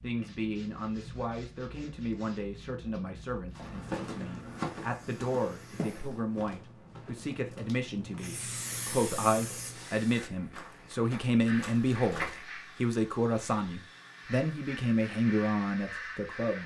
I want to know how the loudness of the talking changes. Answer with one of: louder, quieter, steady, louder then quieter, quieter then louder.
louder.